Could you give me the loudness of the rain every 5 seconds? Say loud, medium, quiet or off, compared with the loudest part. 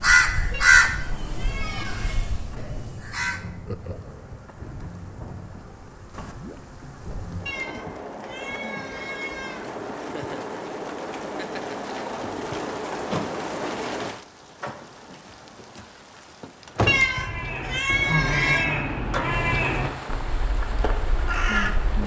medium, medium, loud, loud, loud.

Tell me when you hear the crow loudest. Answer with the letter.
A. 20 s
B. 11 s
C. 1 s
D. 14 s
C.